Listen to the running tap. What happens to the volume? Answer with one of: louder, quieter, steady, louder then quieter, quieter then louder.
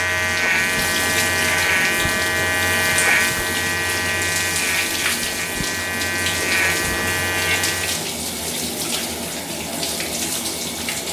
steady.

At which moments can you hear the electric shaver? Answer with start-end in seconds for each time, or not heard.
0.0-8.1.